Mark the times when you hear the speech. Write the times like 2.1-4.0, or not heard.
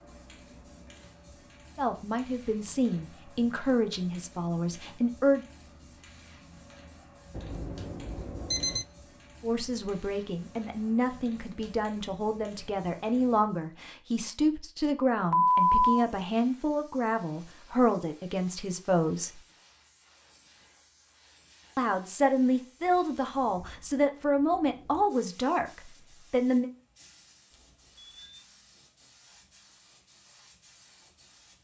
1.8-5.5, 9.4-19.4, 21.8-26.7.